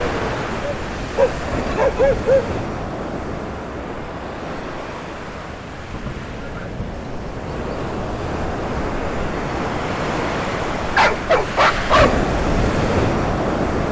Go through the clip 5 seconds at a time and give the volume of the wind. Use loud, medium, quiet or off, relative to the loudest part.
medium, medium, loud.